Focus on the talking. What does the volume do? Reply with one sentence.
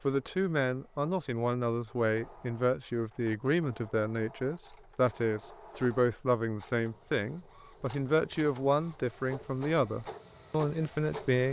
The volume of the talking stays about the same.